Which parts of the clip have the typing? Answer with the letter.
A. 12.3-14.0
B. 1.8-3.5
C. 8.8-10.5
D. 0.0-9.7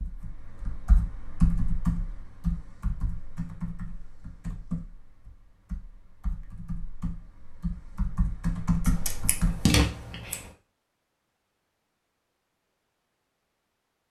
D.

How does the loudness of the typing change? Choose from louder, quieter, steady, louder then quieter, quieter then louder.
quieter then louder.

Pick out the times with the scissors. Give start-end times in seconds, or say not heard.
8.8-10.5.